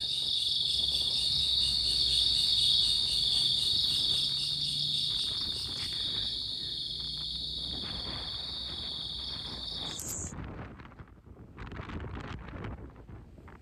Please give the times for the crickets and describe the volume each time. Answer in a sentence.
You can hear the crickets from 0.0 to 10.3 s, getting quieter.